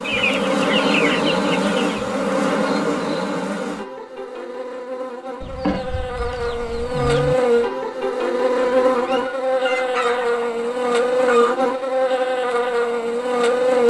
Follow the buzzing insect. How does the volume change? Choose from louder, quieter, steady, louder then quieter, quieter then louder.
quieter then louder.